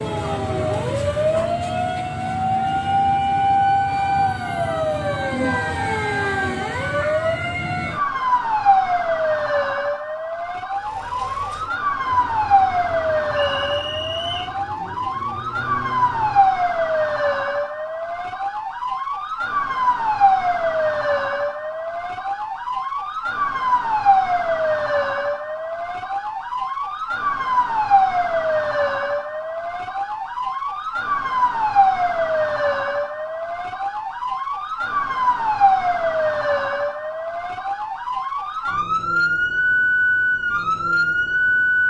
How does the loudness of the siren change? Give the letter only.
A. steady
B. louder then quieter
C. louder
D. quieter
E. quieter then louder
A.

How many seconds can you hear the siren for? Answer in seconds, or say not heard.
42 s.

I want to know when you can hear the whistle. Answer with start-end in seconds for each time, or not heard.
13.3-14.6.